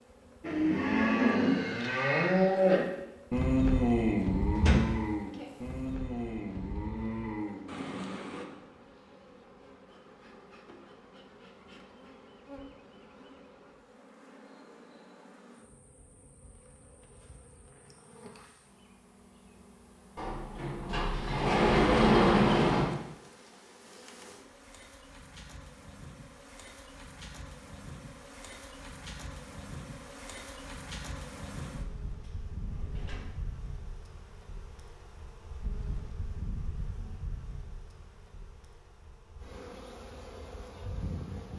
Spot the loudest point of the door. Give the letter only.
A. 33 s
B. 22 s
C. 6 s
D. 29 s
B.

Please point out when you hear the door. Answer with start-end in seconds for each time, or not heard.
4.5-5.5, 20.1-22.9, 32.2-33.2.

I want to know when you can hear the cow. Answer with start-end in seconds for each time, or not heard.
0.4-8.4.